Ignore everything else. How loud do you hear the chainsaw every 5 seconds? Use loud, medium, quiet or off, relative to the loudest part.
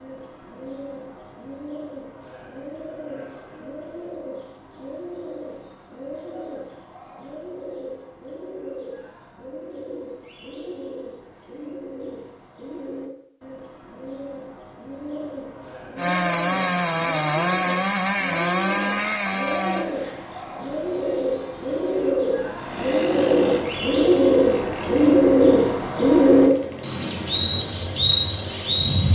off, off, off, loud, medium, quiet.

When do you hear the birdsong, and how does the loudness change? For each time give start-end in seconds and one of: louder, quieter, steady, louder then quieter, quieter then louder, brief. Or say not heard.
0.0-29.1 louder.